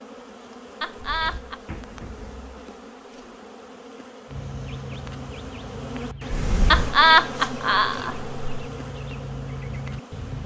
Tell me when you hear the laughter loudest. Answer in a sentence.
The volume of the laughter peaks at 7 seconds.